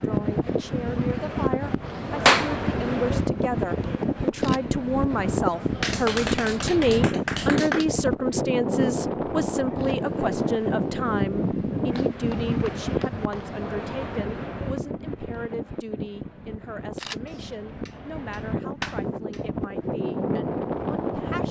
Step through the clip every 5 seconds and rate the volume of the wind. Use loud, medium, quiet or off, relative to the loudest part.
loud, loud, loud, medium, loud.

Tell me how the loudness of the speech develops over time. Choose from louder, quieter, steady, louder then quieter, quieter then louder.
louder then quieter.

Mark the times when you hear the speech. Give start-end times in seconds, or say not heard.
0.0-21.4.